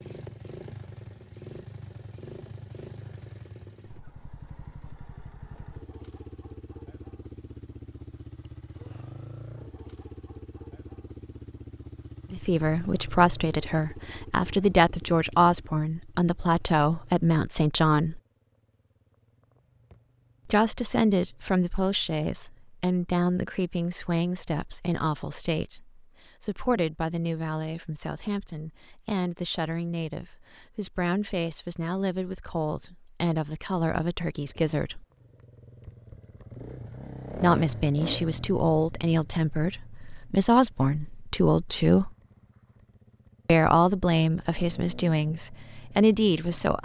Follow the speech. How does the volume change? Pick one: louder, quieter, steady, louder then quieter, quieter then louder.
quieter then louder.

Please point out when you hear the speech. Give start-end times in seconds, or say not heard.
12.3-18.2, 20.4-35.0, 37.4-42.1, 43.5-46.8.